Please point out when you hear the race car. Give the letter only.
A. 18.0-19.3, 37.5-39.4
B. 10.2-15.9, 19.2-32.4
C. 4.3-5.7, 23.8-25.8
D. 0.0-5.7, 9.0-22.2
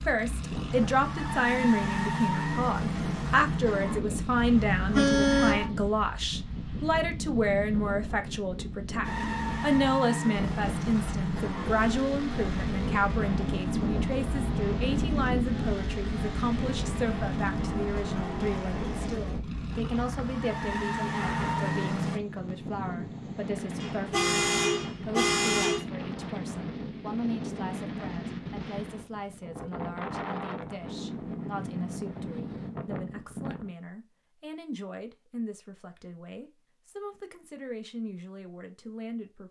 D.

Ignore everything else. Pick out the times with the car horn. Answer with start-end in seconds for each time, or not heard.
4.3-5.7, 23.8-25.8.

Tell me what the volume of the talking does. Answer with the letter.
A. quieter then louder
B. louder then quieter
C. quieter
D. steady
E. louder
C.